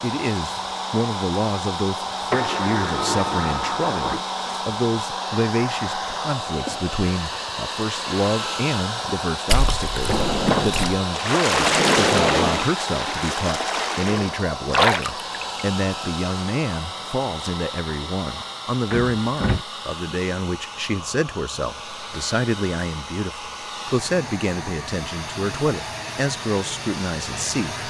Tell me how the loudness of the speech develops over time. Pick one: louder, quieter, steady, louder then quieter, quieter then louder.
steady.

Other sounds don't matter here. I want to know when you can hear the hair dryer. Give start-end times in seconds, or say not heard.
0.0-27.8.